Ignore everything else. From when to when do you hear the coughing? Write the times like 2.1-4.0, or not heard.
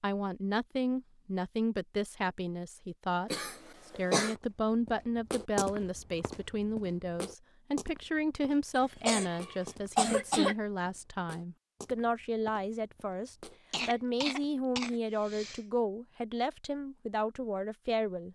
3.3-4.3, 8.8-10.6, 13.7-15.6.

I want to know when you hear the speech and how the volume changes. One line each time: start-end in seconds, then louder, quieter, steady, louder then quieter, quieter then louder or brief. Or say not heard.
0.0-18.3 steady.